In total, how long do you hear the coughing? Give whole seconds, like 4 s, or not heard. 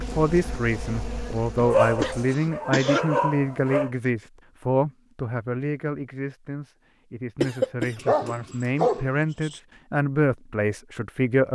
2 s.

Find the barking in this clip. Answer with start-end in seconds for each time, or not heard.
1.6-3.9, 8.0-9.6.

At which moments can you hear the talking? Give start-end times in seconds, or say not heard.
0.0-11.5.